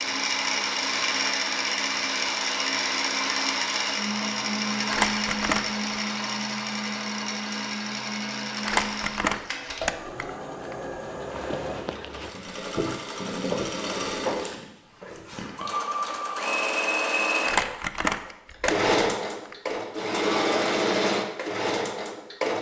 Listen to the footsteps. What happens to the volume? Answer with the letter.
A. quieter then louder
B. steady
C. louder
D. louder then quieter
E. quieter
D.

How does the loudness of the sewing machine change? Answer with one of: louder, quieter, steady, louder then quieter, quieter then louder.
quieter then louder.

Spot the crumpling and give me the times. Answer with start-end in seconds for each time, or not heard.
4.8-5.8, 8.6-10.8, 17.4-19.6.